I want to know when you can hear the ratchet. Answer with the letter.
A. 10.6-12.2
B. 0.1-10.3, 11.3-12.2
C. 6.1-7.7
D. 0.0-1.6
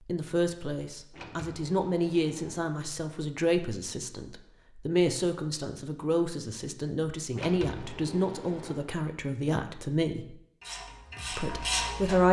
A.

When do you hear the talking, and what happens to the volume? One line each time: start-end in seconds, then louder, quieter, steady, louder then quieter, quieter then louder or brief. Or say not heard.
0.1-10.3 steady
11.3-12.2 brief.